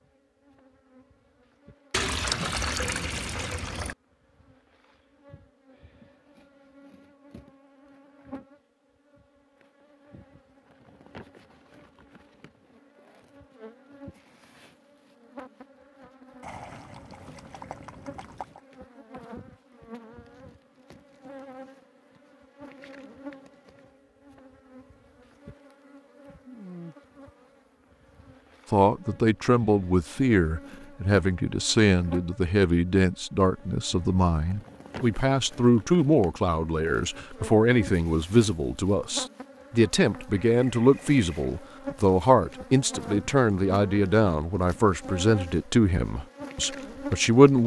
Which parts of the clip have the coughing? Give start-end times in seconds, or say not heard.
not heard.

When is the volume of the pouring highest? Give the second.
2 s.